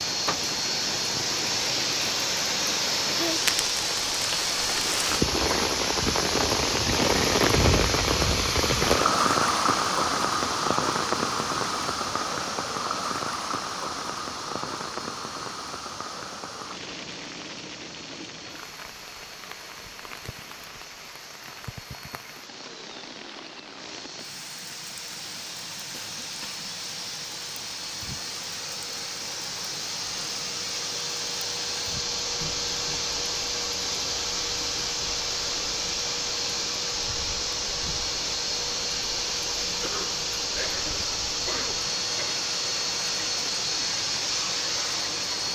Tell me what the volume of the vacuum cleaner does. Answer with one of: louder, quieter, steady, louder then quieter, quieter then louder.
quieter then louder.